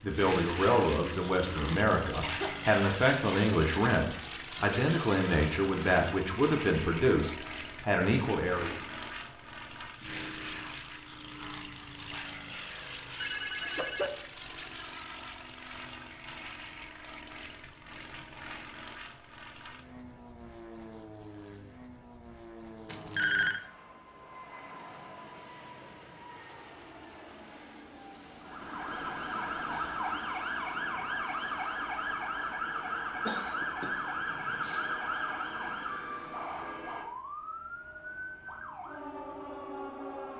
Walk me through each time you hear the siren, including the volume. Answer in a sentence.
The siren can be heard from 28.4 to 40.3 s, getting quieter.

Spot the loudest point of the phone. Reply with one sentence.
The volume of the phone peaks at 23 seconds.